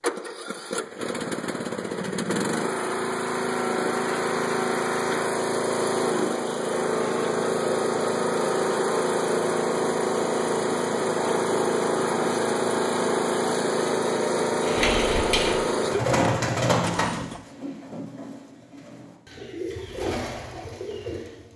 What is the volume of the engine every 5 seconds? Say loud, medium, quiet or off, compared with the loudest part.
loud, loud, loud, loud, off.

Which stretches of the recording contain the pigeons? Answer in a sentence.
You can hear the pigeons from 14.5 to 21.5 s.